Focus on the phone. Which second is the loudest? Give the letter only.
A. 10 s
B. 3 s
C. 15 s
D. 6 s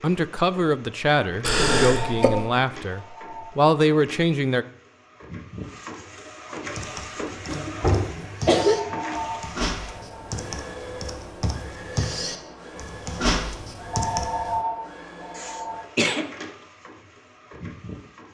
C.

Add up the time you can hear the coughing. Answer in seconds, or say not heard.
3 s.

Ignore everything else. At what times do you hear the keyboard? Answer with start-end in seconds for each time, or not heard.
6.7-14.6.